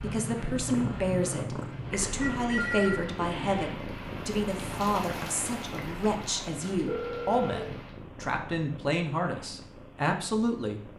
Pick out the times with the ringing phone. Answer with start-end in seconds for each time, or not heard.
2.2-3.6, 6.8-7.6.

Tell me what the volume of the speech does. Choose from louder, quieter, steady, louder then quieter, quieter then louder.
steady.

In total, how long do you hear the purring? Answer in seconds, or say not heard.
11 s.